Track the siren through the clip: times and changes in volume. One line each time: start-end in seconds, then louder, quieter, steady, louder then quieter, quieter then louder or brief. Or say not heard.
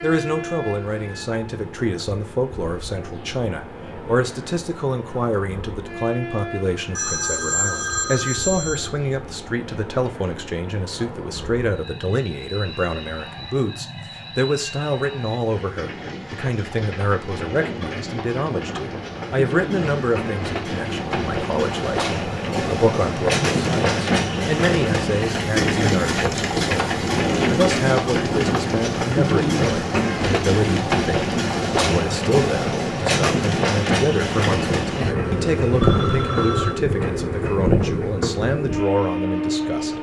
not heard.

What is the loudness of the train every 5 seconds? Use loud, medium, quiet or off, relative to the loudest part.
quiet, quiet, quiet, medium, loud, loud, loud, loud.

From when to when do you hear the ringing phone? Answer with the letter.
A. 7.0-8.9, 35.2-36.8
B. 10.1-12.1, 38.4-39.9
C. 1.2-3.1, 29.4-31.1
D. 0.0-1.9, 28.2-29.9
A.